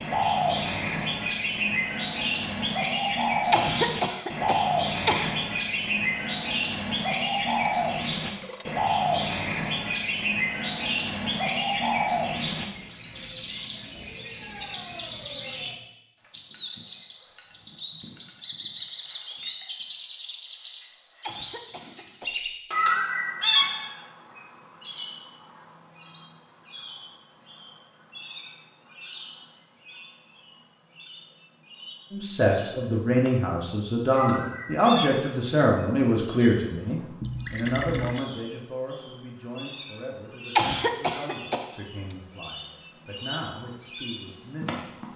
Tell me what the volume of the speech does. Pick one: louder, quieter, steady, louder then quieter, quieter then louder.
quieter.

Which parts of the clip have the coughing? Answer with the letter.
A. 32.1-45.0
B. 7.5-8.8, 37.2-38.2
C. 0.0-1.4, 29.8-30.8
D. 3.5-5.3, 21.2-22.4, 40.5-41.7
D.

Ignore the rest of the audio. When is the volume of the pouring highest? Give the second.
38 s.